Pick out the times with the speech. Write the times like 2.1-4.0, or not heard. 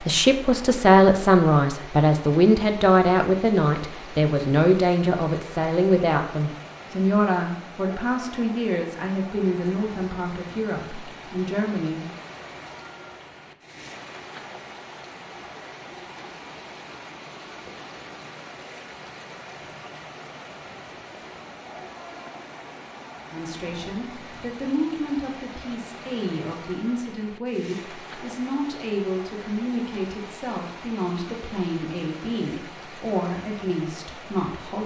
0.1-12.1, 23.3-34.8.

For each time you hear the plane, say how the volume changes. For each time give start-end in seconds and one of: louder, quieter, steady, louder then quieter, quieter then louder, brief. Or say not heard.
not heard.